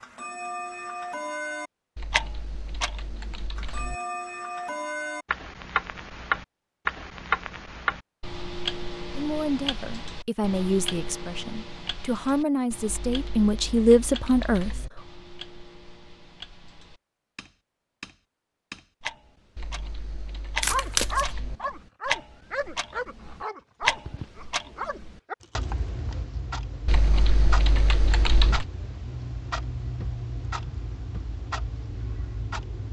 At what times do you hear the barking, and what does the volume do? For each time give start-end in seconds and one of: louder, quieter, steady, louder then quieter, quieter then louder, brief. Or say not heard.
20.6-25.7 quieter.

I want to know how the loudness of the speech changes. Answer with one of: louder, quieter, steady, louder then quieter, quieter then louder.
louder.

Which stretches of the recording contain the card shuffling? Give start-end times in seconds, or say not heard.
20.6-21.2.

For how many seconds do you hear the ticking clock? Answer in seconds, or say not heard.
33 s.